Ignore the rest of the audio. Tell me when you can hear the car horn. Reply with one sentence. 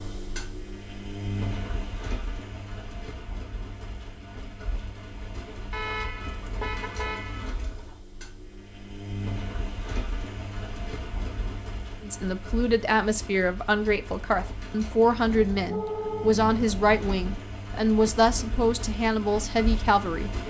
The car horn can be heard from 5.7 to 7.5 s and from 15.2 to 17.4 s.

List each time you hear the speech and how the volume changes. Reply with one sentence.
You can hear the speech from 12.0 to 20.3 s, at a steady volume.